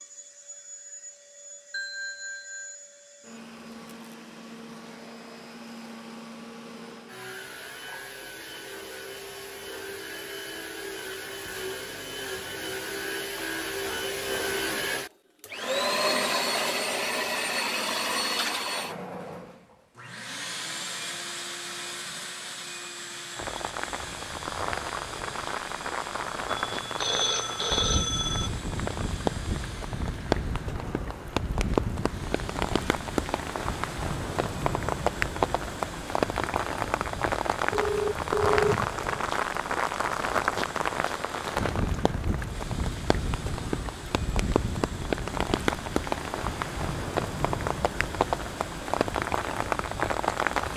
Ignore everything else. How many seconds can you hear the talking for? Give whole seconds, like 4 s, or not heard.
not heard.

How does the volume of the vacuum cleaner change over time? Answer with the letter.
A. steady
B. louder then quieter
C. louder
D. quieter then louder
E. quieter
B.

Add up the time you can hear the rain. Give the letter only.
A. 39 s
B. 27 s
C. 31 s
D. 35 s
B.